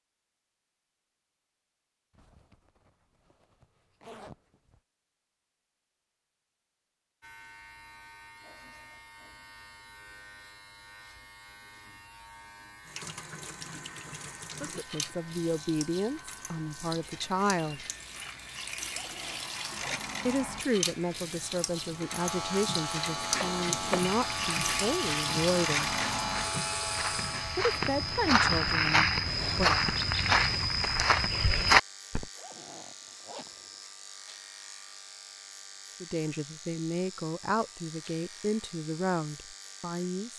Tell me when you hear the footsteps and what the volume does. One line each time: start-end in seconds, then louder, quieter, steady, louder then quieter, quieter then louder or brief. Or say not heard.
23.1-32.2 louder.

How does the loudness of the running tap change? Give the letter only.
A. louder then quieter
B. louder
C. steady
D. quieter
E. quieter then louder
B.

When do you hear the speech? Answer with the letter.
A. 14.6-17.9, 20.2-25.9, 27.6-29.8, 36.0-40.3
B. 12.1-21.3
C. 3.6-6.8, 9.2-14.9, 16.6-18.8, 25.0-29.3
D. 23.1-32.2
A.